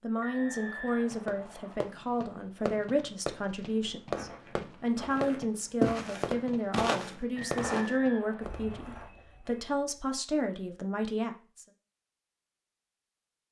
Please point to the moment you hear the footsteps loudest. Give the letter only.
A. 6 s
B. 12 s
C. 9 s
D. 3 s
A.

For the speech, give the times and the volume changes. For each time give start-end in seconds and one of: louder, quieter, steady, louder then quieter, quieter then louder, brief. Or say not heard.
0.0-11.7 steady.